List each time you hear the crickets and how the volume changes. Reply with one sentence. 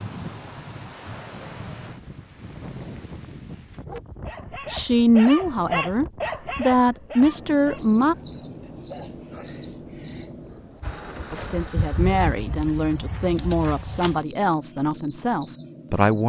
The crickets can be heard from 7.3 to 16.2 s, getting quieter then louder.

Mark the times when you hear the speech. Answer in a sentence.
You can hear the speech from 4.7 to 8.2 s and from 11.3 to 16.2 s.